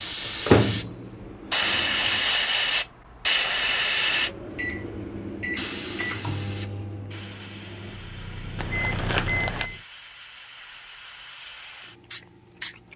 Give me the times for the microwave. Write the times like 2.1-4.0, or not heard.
0.0-2.2, 4.0-9.8.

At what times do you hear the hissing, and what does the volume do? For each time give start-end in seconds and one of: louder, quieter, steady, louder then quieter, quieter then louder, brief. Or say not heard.
0.0-12.9 quieter.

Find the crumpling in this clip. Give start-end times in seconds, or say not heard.
8.6-9.7.